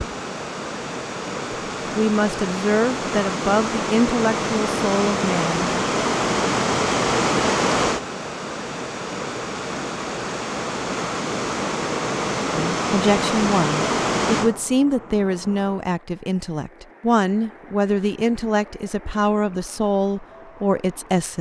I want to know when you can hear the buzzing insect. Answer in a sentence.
You can't hear the buzzing insect here.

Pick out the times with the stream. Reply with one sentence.
You can hear the stream from 0.0 to 21.3 s.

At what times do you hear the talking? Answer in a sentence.
The talking can be heard from 1.9 to 5.7 s and from 12.5 to 21.3 s.